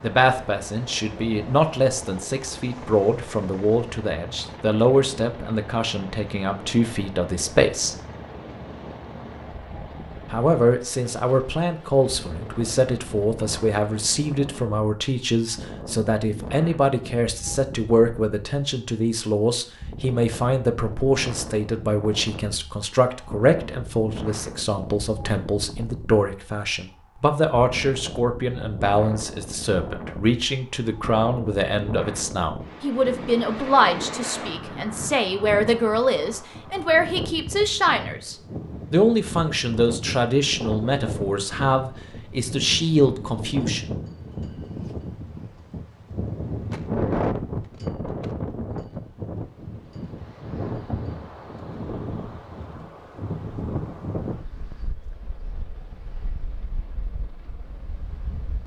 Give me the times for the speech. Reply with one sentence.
The speech can be heard from 0.0 to 8.0 s and from 10.3 to 44.0 s.